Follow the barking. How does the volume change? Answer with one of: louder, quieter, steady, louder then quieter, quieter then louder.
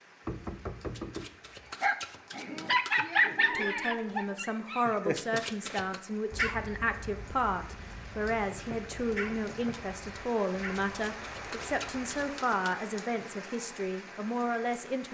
quieter.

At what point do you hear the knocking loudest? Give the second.
1 s.